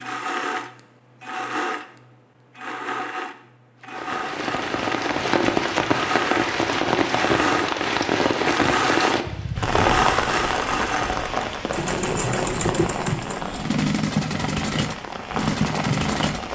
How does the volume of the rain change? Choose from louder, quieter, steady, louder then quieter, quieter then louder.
quieter.